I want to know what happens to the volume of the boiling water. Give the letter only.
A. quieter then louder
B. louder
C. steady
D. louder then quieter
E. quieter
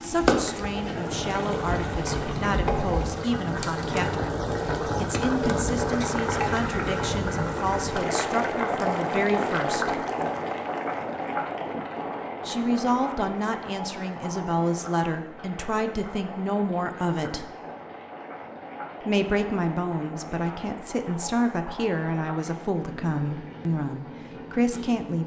E.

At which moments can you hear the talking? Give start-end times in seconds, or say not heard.
0.0-10.1, 12.4-17.4, 19.1-25.2.